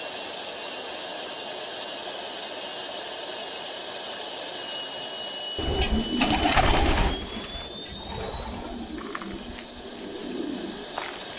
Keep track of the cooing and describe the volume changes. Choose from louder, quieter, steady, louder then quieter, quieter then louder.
quieter.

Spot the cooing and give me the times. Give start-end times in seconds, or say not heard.
5.3-11.3.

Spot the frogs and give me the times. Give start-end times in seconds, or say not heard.
not heard.